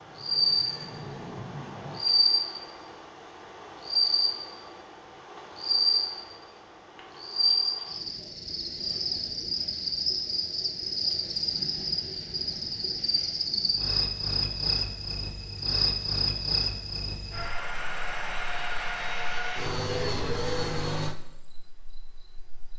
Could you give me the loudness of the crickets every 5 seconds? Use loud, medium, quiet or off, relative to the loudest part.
loud, loud, loud, loud, quiet.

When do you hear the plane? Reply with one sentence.
The plane can be heard from 0.0 to 2.0 s and from 17.3 to 21.1 s.